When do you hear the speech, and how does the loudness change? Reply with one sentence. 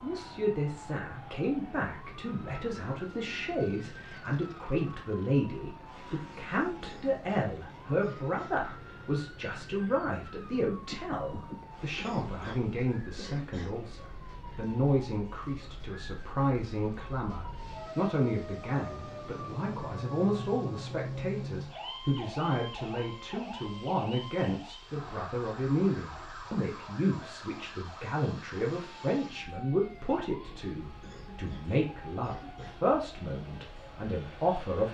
The speech can be heard from 0.0 to 34.8 s, at a steady volume.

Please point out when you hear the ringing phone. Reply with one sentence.
The ringing phone can be heard from 10.8 to 11.7 s.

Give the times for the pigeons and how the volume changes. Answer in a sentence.
The pigeons can't be heard in this clip.